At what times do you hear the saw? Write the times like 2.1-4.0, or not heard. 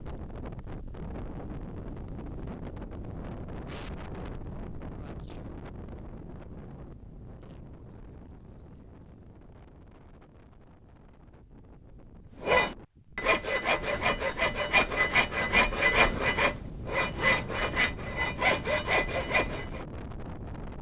12.4-19.9.